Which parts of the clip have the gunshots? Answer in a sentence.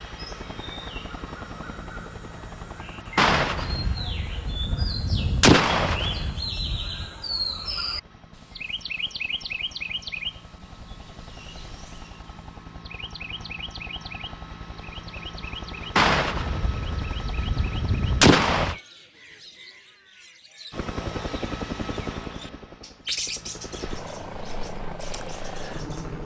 The gunshots can be heard from 3.1 to 7.0 s and from 15.9 to 18.8 s.